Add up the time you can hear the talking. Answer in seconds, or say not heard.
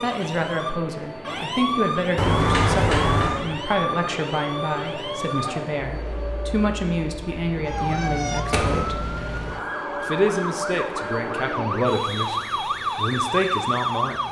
13 s.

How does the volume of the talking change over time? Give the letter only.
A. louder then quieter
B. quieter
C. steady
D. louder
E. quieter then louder
C.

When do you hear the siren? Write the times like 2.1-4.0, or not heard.
0.0-14.2.